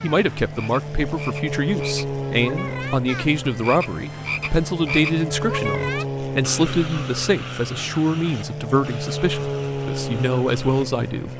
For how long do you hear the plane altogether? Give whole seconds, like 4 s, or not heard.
11 s.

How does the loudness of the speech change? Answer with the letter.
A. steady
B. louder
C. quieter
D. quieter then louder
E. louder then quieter
A.